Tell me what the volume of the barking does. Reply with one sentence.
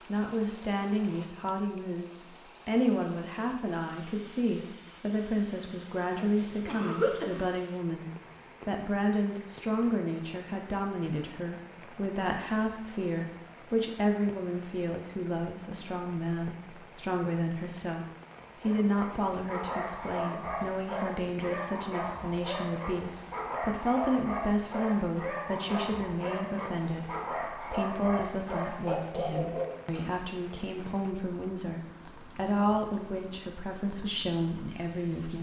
The loudness of the barking stays about the same.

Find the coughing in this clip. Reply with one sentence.
The coughing can be heard from 6.2 to 7.5 s.